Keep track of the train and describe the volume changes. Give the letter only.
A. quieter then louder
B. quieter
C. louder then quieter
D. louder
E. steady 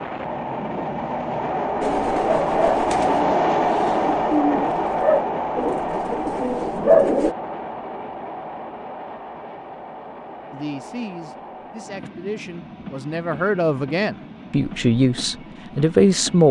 B.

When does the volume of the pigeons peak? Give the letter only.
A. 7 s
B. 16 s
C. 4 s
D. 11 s
A.